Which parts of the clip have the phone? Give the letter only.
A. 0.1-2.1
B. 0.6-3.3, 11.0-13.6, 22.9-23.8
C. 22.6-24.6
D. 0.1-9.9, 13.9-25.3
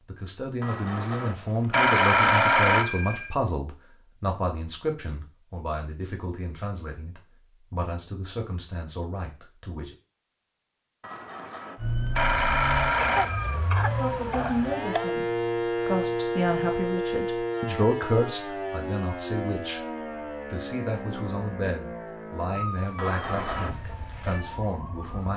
B.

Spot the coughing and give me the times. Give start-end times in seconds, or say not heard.
13.0-15.0.